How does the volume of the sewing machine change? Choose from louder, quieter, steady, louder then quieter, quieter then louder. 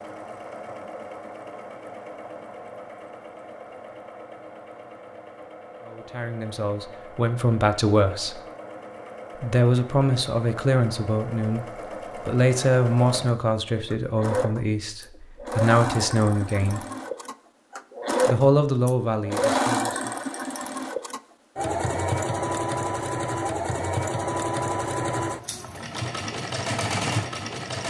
louder.